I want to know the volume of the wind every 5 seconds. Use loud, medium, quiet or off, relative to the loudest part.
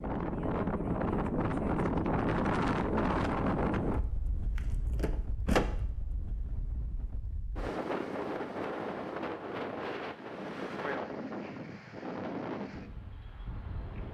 loud, medium, medium.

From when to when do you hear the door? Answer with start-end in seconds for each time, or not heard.
4.5-5.7.